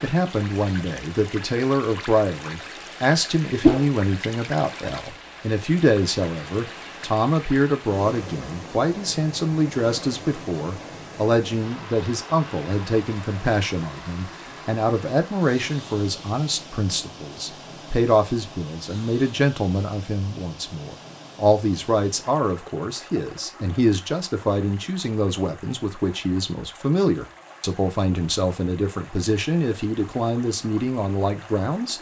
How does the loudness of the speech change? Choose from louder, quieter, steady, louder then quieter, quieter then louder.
steady.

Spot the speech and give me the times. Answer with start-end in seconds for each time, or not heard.
0.0-31.9.